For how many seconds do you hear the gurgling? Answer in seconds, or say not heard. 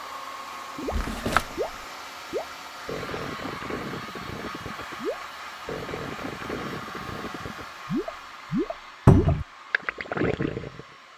10 s.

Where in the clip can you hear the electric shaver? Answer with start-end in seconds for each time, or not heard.
not heard.